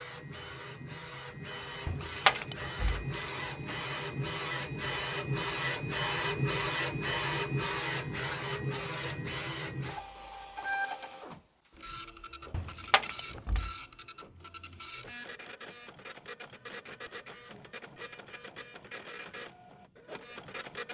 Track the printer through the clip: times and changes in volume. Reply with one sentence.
You can hear the printer from 0.0 to 20.8 s, getting louder then quieter.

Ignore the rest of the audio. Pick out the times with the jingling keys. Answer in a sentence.
The jingling keys can be heard from 1.9 to 3.7 s and from 12.5 to 13.7 s.